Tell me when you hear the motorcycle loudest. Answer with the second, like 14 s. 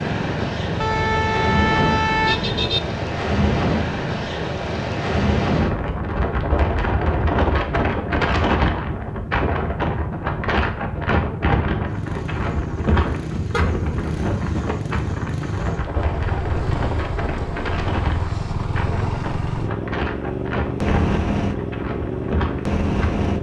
21 s.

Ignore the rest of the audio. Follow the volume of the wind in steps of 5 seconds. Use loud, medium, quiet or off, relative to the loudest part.
loud, loud, loud, medium, medium.